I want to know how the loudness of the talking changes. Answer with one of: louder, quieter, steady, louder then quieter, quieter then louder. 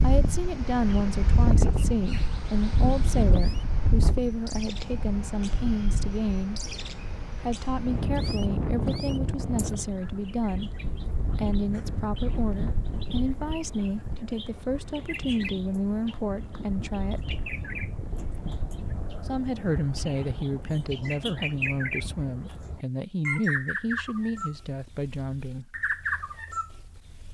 steady.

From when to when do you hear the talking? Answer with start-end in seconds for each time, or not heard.
0.0-6.6, 7.2-17.4, 19.2-25.8.